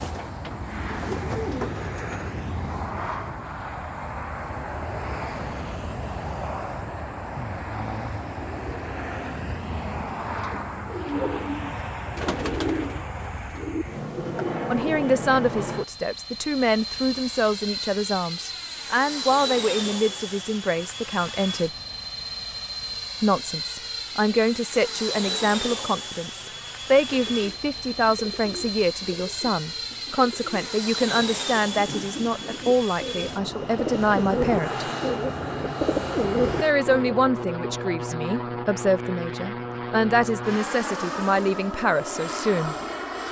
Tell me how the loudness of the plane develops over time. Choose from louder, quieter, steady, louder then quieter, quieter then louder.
steady.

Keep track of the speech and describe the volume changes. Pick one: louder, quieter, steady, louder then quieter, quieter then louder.
steady.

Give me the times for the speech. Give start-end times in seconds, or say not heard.
14.7-21.7, 23.2-34.9, 36.6-42.8.